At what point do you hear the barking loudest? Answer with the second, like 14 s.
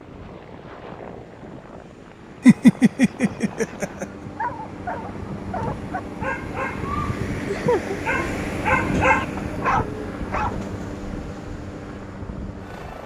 9 s.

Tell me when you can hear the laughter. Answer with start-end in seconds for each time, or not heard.
2.5-4.0, 7.4-8.3.